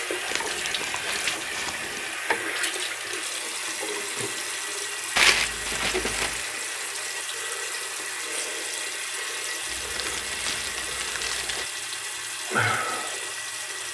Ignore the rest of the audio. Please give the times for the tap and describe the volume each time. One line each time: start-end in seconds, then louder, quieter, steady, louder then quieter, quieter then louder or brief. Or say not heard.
0.0-13.8 steady.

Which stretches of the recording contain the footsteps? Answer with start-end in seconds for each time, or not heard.
not heard.